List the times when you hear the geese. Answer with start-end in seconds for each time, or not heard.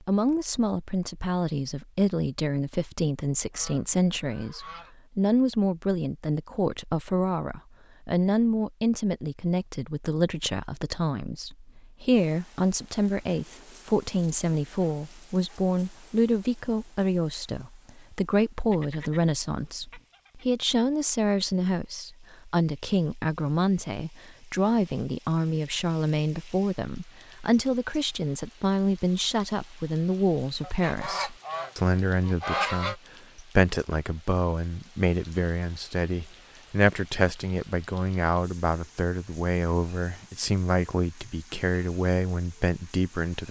3.5-5.0, 18.5-20.4, 30.6-33.0.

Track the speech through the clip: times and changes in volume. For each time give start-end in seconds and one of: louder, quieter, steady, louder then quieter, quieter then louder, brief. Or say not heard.
0.0-43.4 steady.